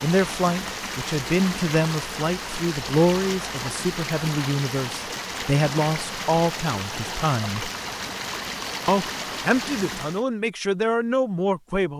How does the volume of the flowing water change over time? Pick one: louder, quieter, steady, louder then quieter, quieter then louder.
steady.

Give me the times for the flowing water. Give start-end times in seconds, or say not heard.
0.0-10.2.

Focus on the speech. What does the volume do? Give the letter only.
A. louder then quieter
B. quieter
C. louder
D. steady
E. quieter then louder
D.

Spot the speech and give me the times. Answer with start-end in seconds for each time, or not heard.
0.0-7.7, 8.8-11.9.